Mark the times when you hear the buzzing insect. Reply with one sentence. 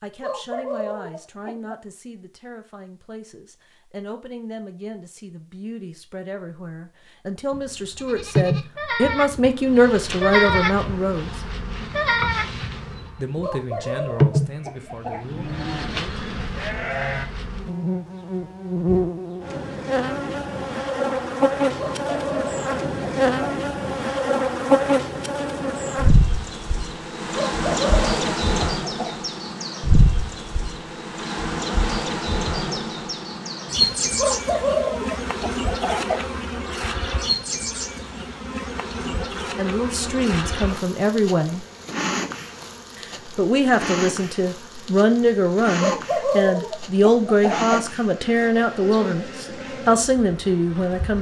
The buzzing insect can be heard from 7.5 to 51.1 s.